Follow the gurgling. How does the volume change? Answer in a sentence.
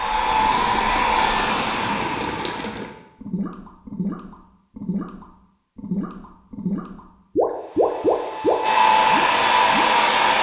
The loudness of the gurgling goes up.